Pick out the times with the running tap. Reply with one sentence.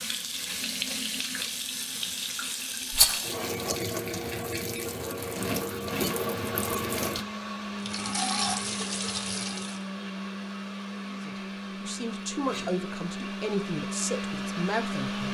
You can hear the running tap from 0.0 to 9.8 s.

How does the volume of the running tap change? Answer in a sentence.
The volume of the running tap stays about the same.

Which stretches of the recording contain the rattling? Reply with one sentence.
The rattling can be heard from 2.9 to 3.4 s.